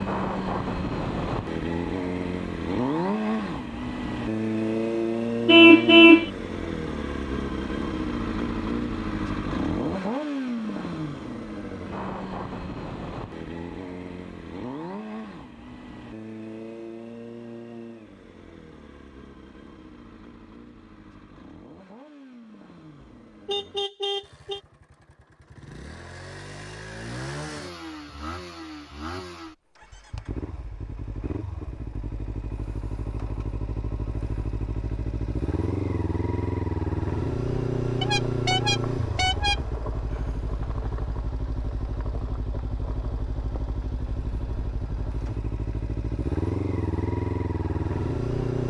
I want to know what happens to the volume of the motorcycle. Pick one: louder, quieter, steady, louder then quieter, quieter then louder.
quieter then louder.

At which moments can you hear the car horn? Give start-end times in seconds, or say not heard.
5.5-6.2, 23.0-24.6, 38.0-39.6.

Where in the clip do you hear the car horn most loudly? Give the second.
6 s.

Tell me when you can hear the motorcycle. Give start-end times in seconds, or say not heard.
0.0-48.6.